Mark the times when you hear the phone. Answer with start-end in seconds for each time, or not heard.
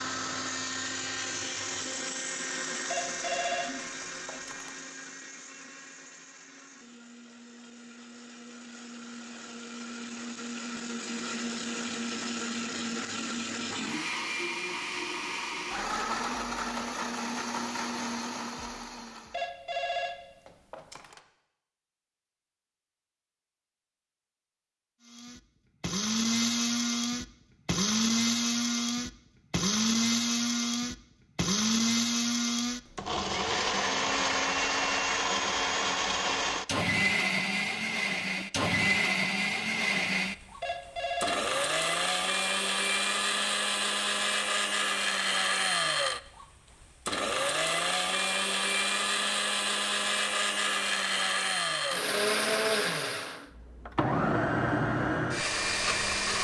2.9-4.7, 19.3-21.2, 40.6-41.5.